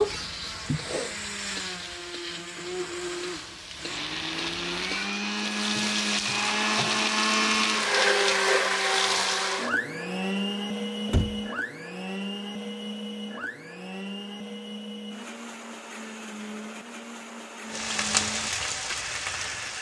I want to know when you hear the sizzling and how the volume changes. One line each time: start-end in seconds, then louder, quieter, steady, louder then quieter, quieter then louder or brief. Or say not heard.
0.0-9.8 louder
17.7-19.7 brief.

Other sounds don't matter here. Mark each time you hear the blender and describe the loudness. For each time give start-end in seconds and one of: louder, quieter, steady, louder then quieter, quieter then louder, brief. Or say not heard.
0.0-19.7 louder then quieter.